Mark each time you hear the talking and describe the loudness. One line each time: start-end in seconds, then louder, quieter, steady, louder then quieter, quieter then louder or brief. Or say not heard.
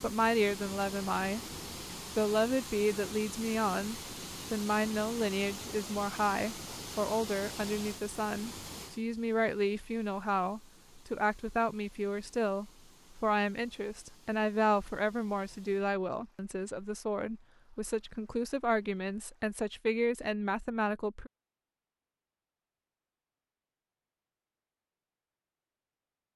0.0-1.4 brief
2.1-21.3 steady.